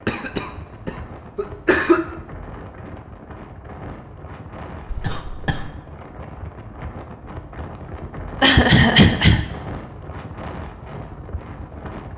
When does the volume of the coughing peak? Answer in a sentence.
The loudest moment of the coughing is at 9 seconds.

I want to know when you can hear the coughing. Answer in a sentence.
The coughing can be heard from 0.1 to 2.0 s, from 4.9 to 5.7 s and from 8.4 to 9.4 s.